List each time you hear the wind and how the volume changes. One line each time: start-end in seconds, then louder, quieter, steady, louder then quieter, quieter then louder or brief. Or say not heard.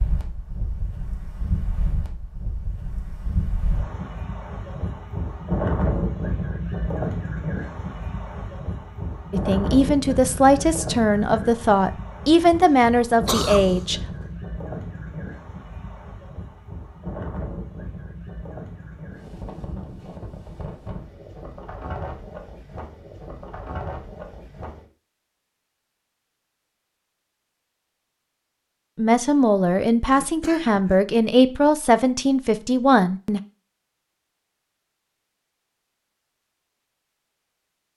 0.0-24.9 louder then quieter.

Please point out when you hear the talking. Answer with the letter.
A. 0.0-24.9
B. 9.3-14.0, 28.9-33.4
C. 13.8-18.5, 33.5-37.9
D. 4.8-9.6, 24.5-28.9
B.